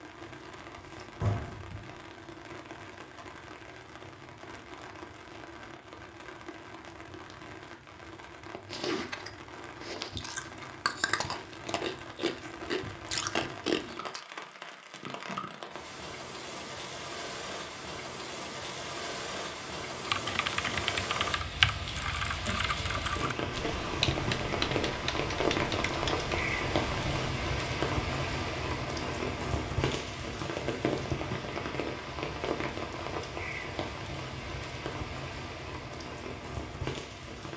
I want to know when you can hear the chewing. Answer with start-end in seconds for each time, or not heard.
8.5-14.2.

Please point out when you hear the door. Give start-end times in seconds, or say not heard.
0.8-1.9.